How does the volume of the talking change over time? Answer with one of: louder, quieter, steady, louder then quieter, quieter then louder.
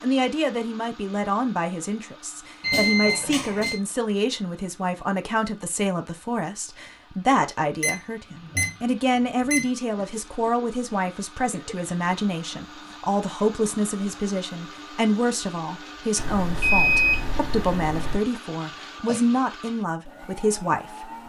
steady.